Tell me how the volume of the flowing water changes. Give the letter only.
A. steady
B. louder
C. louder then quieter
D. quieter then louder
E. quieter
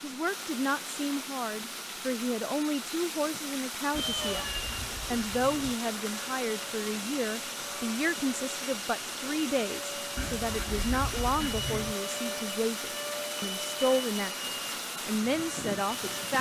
A.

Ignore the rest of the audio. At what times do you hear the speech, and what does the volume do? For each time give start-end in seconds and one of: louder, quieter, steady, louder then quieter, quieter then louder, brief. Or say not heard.
0.0-16.3 steady.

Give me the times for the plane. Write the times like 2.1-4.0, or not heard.
4.0-16.3.